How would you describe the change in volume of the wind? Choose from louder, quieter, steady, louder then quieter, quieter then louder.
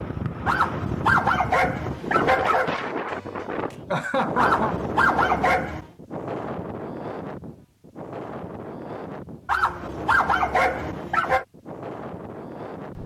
quieter.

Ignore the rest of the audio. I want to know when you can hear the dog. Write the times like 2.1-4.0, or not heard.
0.5-2.8, 4.3-5.9, 9.4-11.4.